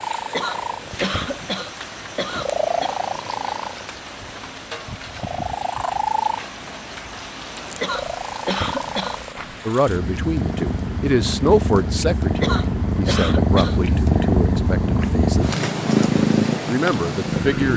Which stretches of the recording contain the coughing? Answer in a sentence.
The coughing can be heard from 0.3 to 3.0 s, from 7.8 to 9.2 s and from 12.4 to 13.8 s.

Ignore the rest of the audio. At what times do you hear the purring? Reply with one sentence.
You can hear the purring from 0.0 to 17.7 s.